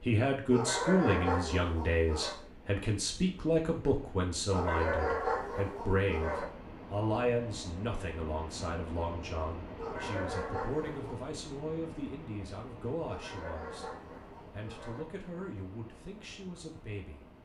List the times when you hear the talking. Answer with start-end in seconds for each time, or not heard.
0.0-17.2.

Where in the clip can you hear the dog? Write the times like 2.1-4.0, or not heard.
0.5-2.4, 4.5-6.5, 9.8-11.2, 13.1-15.1.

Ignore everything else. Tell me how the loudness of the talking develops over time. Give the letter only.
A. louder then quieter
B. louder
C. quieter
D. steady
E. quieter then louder
C.